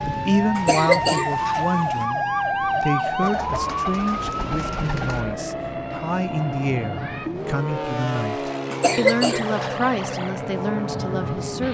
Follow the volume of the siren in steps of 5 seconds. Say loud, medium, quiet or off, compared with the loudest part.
loud, medium, medium.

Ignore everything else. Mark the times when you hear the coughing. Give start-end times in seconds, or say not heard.
0.6-2.0, 8.7-9.8.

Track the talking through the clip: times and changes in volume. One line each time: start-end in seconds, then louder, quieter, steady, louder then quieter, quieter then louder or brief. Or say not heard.
0.1-11.6 steady.